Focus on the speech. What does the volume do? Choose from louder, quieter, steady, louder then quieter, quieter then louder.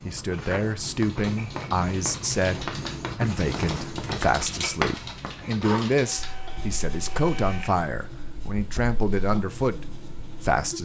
steady.